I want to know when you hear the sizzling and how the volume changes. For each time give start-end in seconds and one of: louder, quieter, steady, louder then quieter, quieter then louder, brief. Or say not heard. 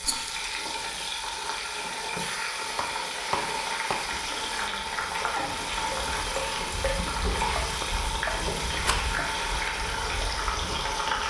0.0-11.2 steady.